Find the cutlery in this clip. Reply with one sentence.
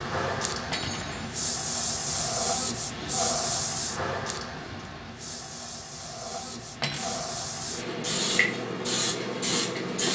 The cutlery can be heard from 0.7 to 1.4 s and from 6.8 to 7.2 s.